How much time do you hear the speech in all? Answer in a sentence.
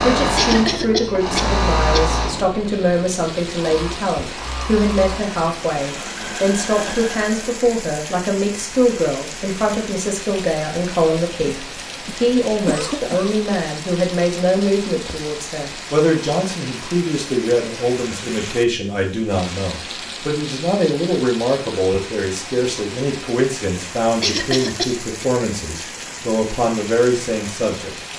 You can hear the speech for 28 seconds altogether.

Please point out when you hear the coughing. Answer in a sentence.
The coughing can be heard from 0.3 to 2.0 s, from 11.4 to 13.3 s and from 24.2 to 25.2 s.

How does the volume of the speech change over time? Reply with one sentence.
The volume of the speech stays about the same.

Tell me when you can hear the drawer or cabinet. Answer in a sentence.
You can't hear the drawer or cabinet here.